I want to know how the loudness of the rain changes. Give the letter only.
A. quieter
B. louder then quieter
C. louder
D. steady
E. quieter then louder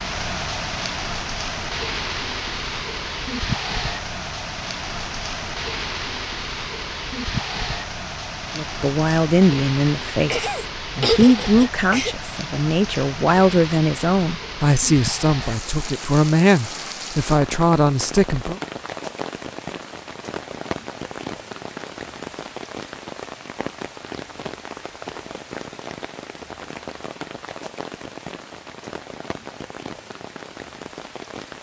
A.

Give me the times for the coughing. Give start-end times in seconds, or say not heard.
10.3-12.2.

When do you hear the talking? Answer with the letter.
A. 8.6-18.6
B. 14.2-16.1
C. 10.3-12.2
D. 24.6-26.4
A.